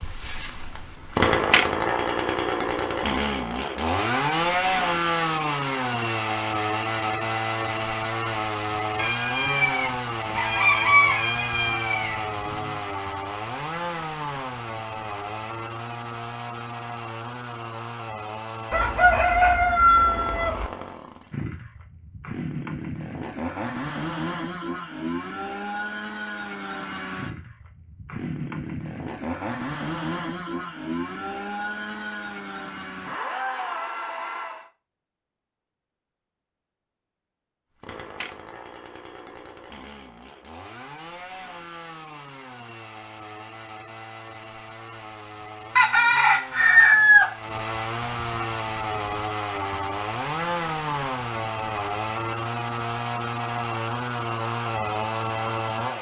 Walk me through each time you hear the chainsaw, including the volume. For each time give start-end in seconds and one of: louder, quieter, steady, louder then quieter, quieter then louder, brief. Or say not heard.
0.0-34.7 quieter
37.8-55.9 louder.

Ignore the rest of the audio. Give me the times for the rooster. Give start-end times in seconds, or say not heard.
8.9-12.7, 18.7-20.7, 45.8-47.3.